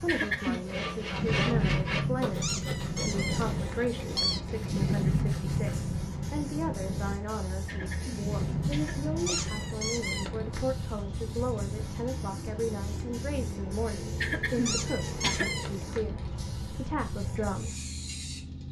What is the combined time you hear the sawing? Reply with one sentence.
You can hear the sawing for 6 seconds altogether.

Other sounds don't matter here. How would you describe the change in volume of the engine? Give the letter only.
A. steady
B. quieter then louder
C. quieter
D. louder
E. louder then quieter
C.